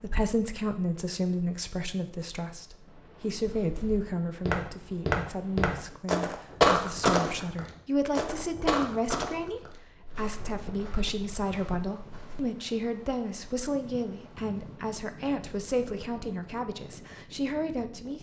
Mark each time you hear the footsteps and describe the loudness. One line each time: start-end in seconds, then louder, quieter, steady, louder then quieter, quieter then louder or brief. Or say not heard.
3.4-12.4 louder then quieter.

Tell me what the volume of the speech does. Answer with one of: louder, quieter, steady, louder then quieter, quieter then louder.
steady.